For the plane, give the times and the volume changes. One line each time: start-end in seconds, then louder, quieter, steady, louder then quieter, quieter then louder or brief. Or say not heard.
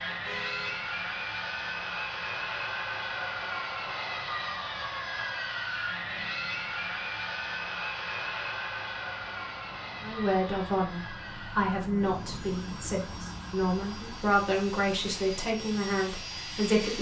0.0-16.9 quieter.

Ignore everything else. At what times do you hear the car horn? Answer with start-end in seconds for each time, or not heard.
0.1-0.8.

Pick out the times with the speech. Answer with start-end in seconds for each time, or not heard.
10.0-16.9.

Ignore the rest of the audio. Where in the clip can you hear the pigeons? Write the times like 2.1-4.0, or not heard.
not heard.